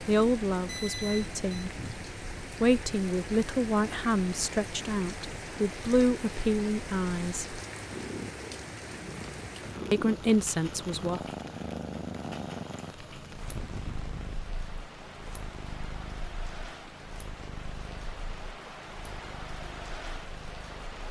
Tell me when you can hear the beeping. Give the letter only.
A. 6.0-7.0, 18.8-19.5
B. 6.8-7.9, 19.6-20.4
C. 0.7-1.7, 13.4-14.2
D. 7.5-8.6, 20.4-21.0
C.